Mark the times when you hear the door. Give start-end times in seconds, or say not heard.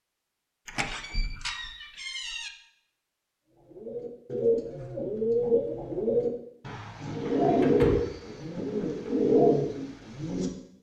0.7-2.5, 7.2-9.1.